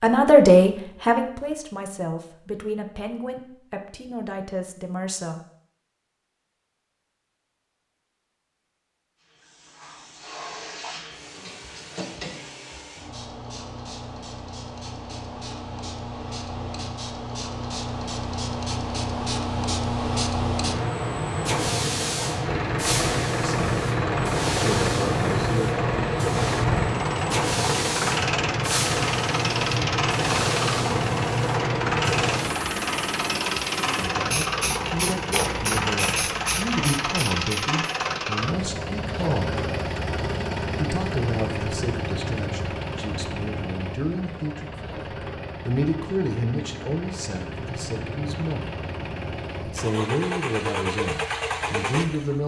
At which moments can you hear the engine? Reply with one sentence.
You can hear the engine from 22.4 to 52.4 s.